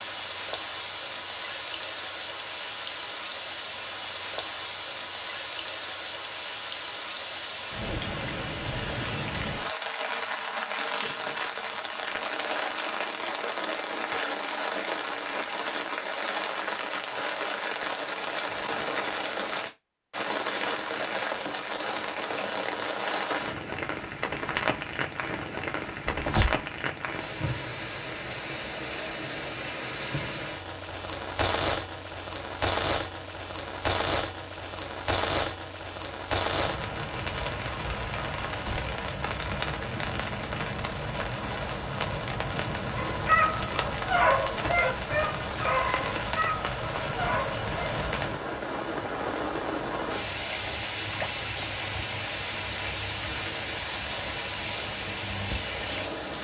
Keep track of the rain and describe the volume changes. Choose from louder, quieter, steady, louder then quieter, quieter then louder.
steady.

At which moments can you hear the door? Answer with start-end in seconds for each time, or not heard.
26.1-26.6, 38.5-38.9.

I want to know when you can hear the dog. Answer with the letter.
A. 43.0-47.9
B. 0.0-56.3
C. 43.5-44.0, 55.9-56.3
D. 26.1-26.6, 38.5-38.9
A.